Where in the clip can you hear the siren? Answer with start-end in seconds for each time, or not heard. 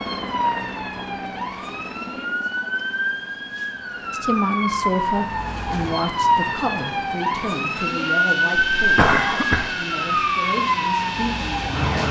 0.0-12.0.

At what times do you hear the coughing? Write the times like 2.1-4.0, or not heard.
8.6-9.8.